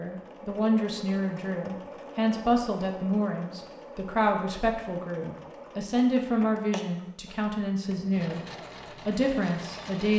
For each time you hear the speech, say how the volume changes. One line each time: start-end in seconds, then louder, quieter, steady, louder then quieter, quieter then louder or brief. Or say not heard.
0.0-10.1 steady.